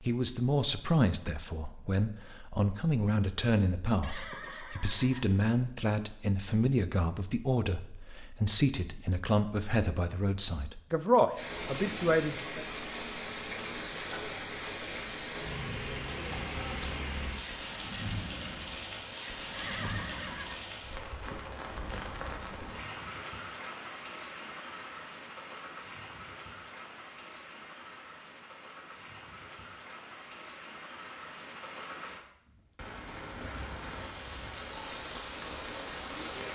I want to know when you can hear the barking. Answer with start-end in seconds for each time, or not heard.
not heard.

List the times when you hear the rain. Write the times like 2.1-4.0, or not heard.
11.3-36.5.